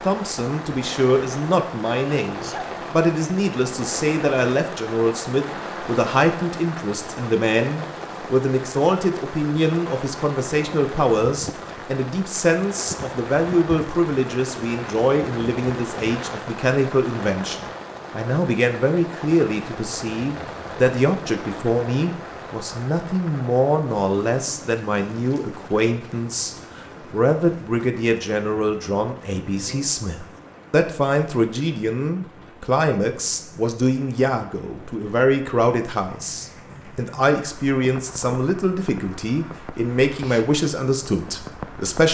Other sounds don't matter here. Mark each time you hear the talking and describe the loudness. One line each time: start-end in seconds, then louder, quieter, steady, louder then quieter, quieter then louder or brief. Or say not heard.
0.0-42.0 steady.